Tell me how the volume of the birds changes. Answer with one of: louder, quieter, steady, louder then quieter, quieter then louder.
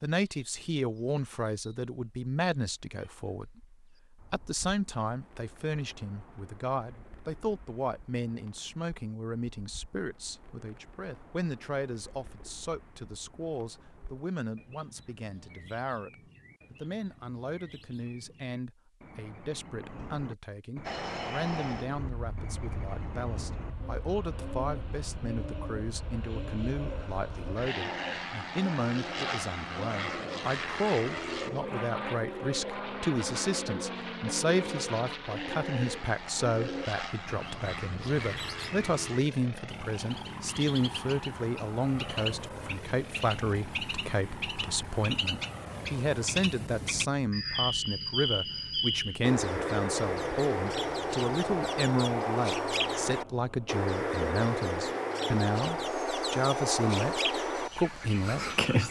louder.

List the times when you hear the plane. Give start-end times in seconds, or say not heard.
20.9-58.8.